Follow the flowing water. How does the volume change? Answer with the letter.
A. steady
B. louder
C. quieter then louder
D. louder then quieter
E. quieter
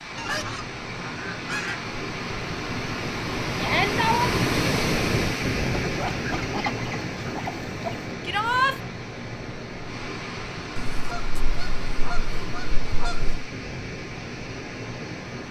D.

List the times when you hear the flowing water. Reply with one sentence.
You can hear the flowing water from 0.0 to 15.4 s.